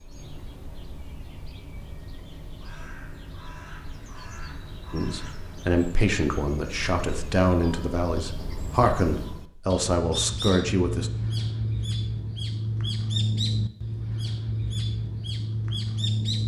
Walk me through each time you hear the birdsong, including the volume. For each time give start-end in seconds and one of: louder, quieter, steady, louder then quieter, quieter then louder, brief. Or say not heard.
0.0-16.4 louder.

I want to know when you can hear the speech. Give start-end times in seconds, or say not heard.
4.9-11.1.